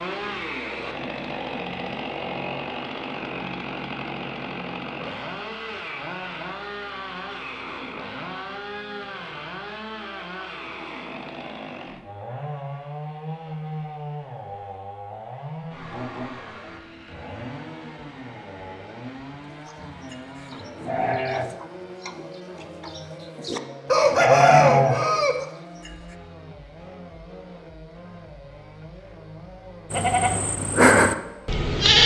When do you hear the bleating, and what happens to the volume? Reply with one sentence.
You can hear the bleating from 19.6 to 25.9 s, getting quieter then louder; and briefly from 29.9 to 32.0 s.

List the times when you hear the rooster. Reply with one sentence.
You can hear the rooster from 23.9 to 25.4 s.